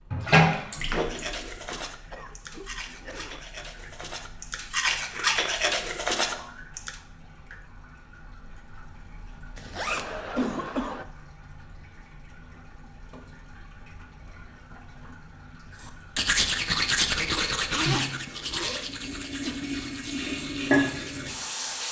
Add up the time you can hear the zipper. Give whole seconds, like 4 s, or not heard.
3 s.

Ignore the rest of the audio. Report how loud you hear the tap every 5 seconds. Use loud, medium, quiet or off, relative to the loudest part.
loud, quiet, quiet, medium, loud.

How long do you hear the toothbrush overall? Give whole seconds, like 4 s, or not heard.
12 s.